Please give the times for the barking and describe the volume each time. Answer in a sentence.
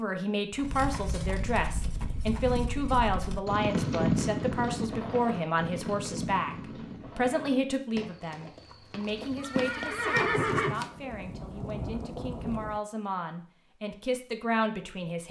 You can't hear the barking here.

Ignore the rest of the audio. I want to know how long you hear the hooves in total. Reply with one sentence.
The hooves can be heard for 10 seconds in total.